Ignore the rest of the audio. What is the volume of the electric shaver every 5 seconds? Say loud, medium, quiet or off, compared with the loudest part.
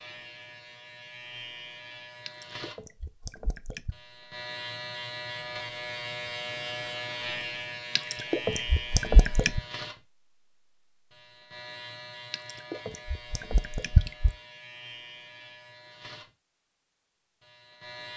medium, loud, medium, medium.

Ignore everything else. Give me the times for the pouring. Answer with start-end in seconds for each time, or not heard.
2.2-4.0, 8.0-9.6, 12.3-14.3.